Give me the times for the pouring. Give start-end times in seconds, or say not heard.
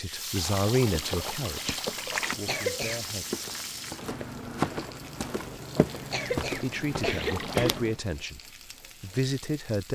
0.3-2.4, 7.2-7.8.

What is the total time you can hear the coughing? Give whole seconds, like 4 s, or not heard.
3 s.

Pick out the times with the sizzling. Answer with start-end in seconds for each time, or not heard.
0.0-9.9.